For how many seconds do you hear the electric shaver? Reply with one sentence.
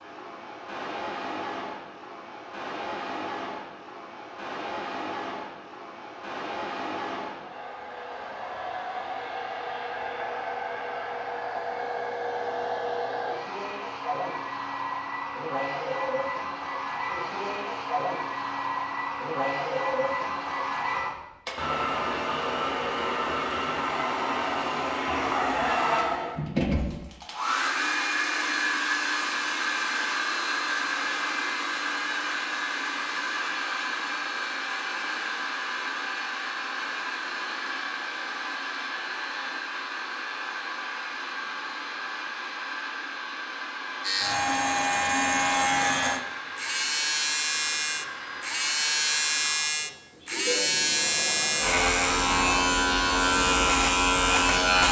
The electric shaver can be heard for 11 seconds in total.